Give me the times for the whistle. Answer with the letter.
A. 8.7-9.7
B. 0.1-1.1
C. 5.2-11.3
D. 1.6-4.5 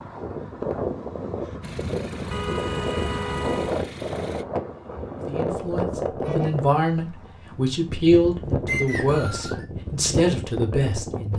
A.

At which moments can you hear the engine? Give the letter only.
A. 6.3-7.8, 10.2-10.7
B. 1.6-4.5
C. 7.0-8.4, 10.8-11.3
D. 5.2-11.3
B.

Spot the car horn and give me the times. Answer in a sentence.
The car horn can be heard from 2.3 to 3.8 s and from 6.2 to 6.7 s.